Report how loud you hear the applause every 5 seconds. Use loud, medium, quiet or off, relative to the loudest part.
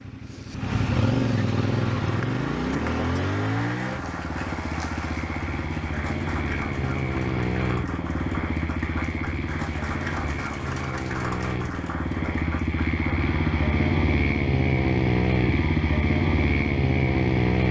loud, loud, loud, off.